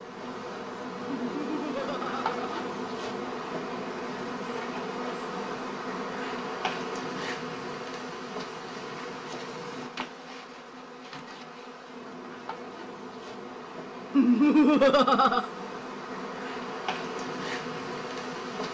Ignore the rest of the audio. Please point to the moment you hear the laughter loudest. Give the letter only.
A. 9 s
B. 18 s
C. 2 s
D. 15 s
D.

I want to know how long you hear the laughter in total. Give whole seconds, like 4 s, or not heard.
3 s.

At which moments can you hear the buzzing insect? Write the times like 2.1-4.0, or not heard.
0.0-18.6.